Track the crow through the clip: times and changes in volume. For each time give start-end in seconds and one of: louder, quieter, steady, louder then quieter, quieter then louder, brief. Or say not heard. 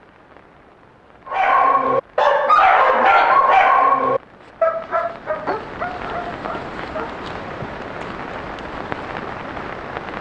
not heard.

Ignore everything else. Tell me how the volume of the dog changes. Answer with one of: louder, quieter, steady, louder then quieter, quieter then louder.
quieter.